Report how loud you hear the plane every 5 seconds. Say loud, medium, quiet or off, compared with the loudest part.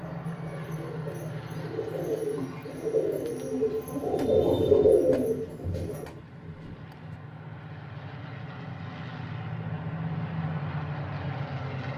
medium, medium, loud.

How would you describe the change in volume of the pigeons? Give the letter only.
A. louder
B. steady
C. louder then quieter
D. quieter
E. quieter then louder
A.